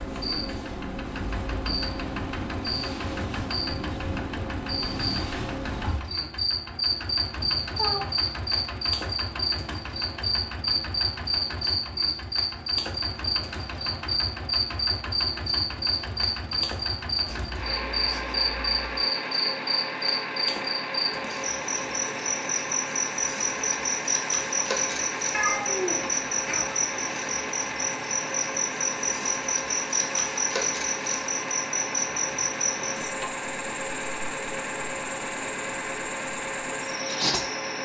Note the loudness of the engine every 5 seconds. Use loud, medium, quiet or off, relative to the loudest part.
medium, medium, medium, loud, loud, loud, loud, loud.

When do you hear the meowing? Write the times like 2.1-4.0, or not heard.
7.3-8.1, 17.2-18.9, 25.3-26.8.